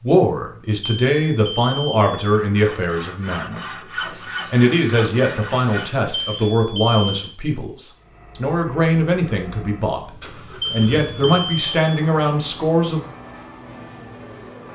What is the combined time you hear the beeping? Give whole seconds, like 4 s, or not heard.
4 s.